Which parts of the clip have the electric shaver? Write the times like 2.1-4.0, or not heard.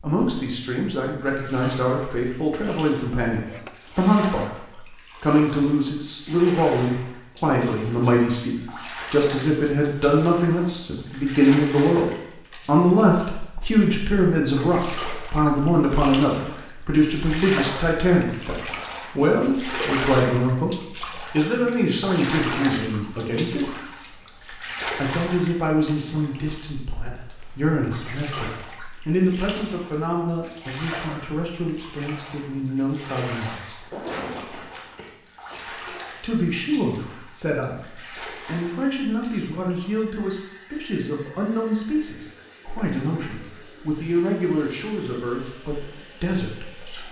not heard.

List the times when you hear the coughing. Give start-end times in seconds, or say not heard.
34.0-35.1.